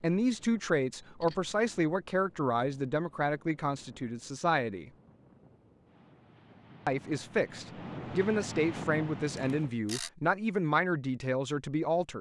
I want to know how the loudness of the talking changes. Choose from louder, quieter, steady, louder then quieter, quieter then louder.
steady.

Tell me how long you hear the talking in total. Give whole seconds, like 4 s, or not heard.
10 s.